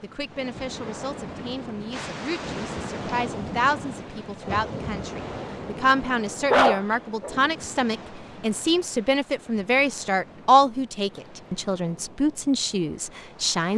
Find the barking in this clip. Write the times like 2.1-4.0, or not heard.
6.5-7.4.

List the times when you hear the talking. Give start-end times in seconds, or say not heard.
0.0-13.7.